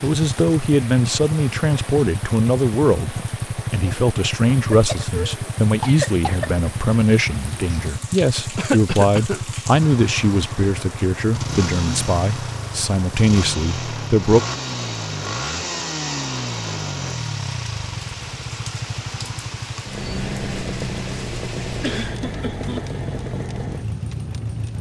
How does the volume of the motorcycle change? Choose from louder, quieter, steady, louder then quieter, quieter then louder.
steady.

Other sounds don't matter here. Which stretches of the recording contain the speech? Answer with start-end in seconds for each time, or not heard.
0.0-14.4.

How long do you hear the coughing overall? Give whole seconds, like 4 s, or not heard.
4 s.